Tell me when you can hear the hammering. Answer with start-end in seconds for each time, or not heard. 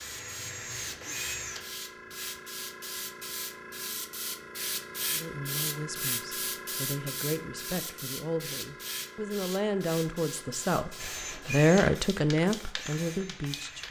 not heard.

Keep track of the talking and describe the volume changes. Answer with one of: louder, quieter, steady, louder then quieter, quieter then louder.
louder.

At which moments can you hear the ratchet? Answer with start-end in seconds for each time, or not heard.
not heard.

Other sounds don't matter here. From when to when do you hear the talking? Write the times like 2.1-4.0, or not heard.
5.1-13.8.